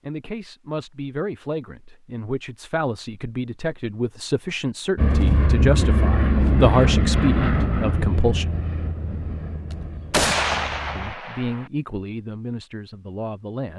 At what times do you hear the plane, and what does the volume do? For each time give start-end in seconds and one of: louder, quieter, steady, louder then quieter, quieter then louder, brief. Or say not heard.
5.0-11.2 quieter.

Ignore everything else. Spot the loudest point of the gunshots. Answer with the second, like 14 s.
10 s.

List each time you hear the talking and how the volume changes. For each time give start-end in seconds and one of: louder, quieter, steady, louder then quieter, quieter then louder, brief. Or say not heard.
0.1-8.6 louder
10.9-13.7 brief.